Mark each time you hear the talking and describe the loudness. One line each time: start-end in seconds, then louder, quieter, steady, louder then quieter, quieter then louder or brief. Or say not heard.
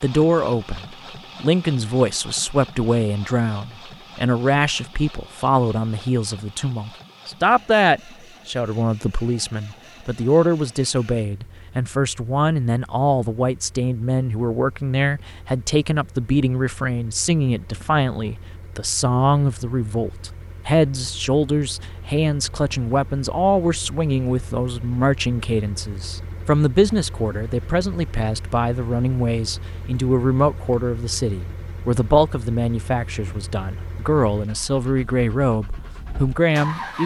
0.0-37.0 steady.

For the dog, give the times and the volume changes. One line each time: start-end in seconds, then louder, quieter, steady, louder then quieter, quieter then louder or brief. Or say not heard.
not heard.